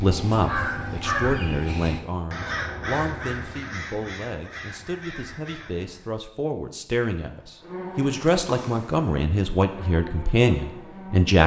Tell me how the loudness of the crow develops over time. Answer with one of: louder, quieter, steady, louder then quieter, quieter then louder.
quieter.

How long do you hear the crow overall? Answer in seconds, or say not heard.
6 s.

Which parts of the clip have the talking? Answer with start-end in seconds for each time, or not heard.
0.0-11.4.